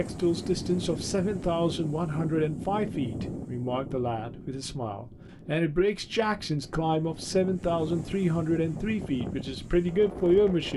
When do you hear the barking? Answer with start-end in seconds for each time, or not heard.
not heard.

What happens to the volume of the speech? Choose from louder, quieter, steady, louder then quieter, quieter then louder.
steady.